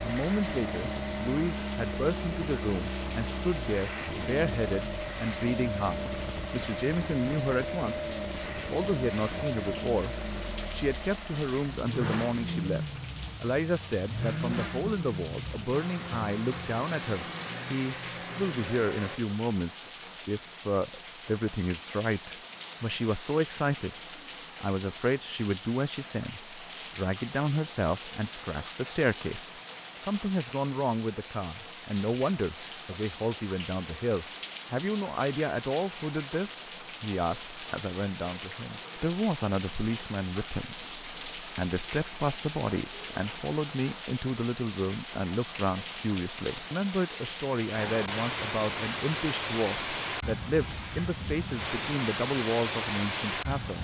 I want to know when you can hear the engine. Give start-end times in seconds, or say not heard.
0.0-19.2.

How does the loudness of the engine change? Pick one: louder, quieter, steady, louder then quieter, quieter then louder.
steady.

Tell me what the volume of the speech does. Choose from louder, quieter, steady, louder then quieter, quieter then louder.
steady.